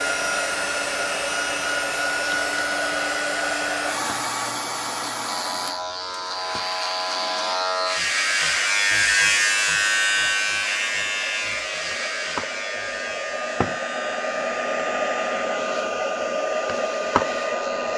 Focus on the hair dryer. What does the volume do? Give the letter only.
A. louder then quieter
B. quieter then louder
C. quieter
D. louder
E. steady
B.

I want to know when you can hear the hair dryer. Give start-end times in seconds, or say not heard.
0.0-17.9.